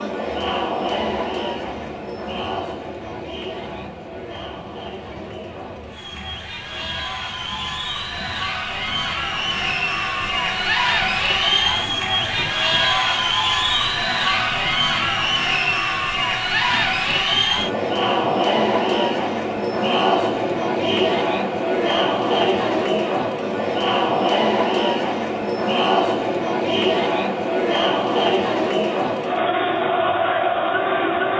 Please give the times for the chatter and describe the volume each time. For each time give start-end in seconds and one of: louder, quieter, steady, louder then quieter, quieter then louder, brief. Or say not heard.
0.0-31.3 louder.